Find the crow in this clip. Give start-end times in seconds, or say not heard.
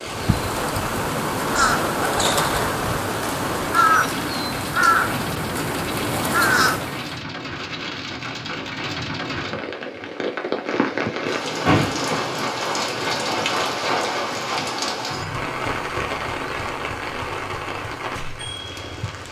0.0-7.2.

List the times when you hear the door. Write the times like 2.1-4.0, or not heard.
11.2-12.1.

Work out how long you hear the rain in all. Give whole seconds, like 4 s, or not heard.
19 s.